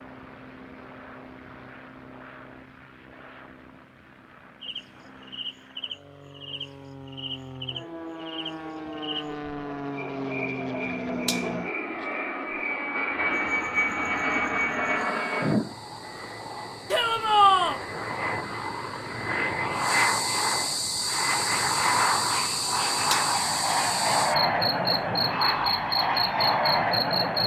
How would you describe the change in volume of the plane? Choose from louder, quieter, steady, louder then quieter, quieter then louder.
louder.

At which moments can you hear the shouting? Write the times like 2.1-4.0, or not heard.
16.9-17.8.